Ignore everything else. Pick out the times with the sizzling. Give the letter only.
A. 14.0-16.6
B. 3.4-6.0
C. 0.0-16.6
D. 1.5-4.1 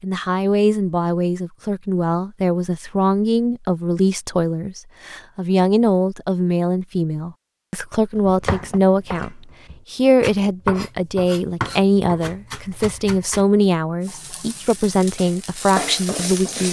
A.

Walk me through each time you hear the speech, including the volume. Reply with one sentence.
You can hear the speech from 0.0 to 16.6 s, at a steady volume.